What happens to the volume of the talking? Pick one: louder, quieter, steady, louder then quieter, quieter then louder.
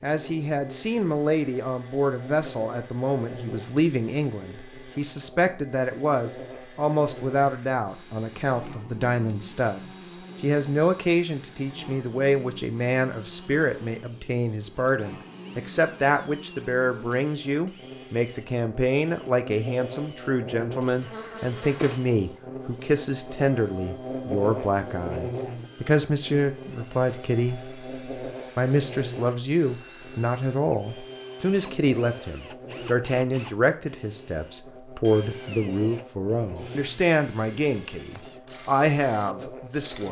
steady.